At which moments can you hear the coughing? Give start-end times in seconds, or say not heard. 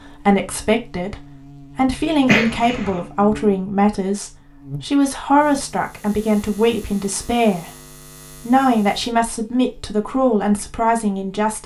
2.2-3.0.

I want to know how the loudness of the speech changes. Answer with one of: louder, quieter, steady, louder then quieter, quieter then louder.
steady.